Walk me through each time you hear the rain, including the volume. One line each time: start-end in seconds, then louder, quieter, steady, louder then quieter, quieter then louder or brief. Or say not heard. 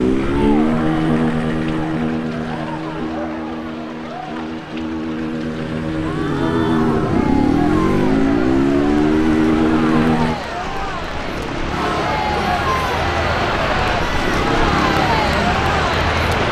0.0-16.4 louder.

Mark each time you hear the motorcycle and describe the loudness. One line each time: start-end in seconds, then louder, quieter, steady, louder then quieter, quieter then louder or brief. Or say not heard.
0.0-10.4 quieter then louder.